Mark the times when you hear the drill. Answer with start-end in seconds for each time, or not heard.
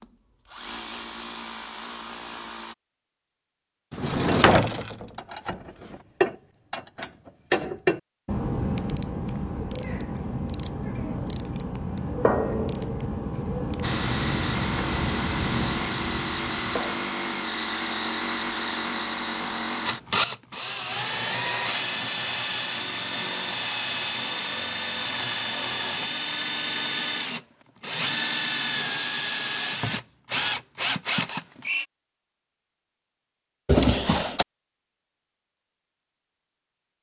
0.0-2.8, 13.8-31.9.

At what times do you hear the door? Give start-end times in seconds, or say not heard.
3.9-6.0, 33.6-34.5.